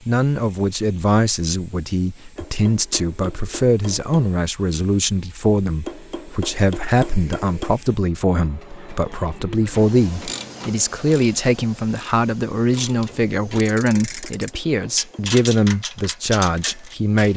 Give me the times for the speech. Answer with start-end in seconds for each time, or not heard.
0.1-17.3.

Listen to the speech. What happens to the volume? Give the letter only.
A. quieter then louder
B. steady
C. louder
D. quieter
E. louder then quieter
B.